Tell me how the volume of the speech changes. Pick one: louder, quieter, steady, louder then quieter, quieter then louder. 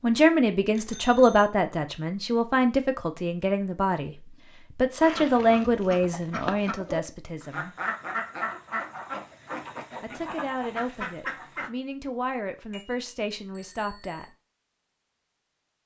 quieter.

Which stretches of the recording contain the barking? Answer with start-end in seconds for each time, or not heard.
not heard.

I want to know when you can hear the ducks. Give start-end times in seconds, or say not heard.
5.0-11.7.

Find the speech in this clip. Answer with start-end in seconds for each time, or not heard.
0.0-7.8, 10.0-14.2.